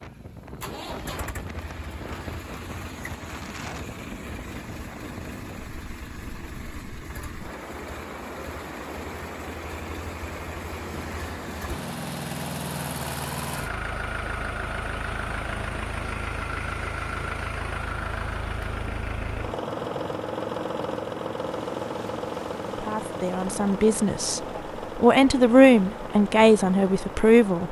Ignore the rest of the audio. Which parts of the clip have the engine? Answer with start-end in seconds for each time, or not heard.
0.0-27.6.